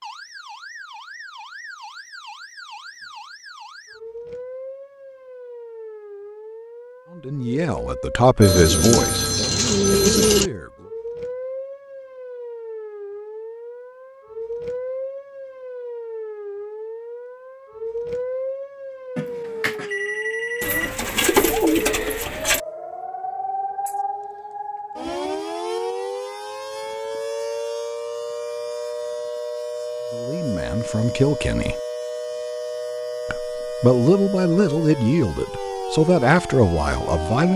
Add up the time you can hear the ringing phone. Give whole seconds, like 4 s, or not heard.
4 s.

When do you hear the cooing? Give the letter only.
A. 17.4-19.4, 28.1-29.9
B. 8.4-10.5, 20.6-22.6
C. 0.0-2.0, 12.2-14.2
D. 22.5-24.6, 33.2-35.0
B.